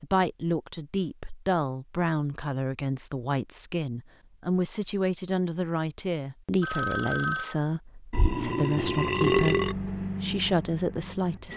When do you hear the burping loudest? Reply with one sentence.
The loudest moment of the burping is at 9 seconds.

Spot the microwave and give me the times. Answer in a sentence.
The microwave can be heard from 9.3 to 11.5 s.